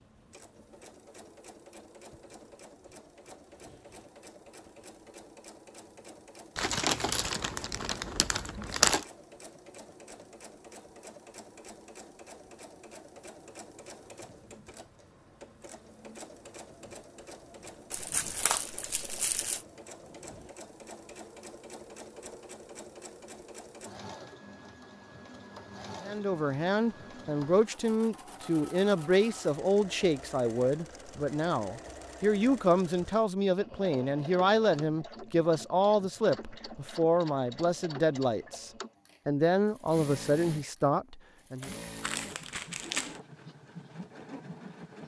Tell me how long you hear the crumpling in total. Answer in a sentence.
The crumpling can be heard for 6 seconds in total.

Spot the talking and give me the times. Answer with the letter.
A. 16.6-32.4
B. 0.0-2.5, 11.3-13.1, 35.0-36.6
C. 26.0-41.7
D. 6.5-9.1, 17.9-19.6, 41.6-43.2
C.